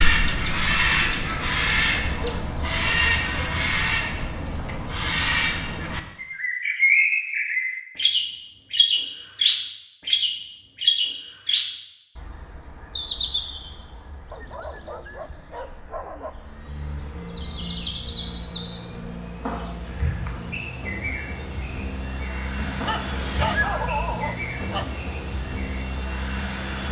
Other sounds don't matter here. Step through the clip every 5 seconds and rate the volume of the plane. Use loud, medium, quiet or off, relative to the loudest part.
off, off, off, medium, loud, loud.